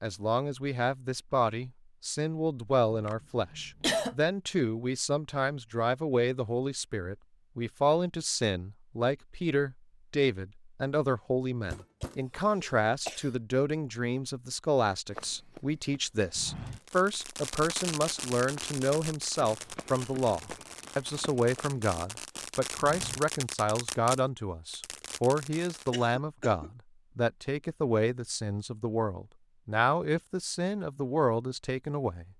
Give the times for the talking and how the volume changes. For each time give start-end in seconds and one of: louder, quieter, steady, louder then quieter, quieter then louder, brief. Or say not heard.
0.0-32.3 steady.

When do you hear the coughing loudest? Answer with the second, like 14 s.
4 s.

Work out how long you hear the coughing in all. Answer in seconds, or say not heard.
4 s.